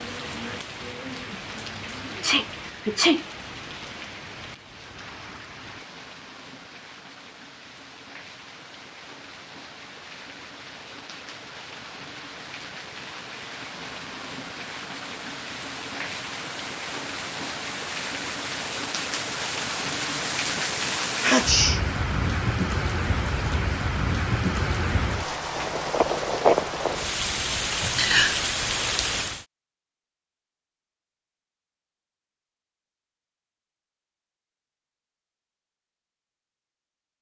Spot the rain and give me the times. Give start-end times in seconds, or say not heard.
0.0-29.4.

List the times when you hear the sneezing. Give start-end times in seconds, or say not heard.
2.1-3.2, 20.1-21.8, 27.8-28.4.